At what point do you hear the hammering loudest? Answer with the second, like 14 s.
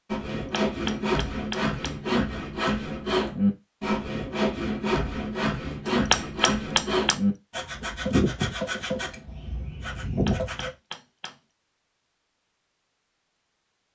6 s.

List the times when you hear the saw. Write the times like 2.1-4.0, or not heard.
0.1-10.7.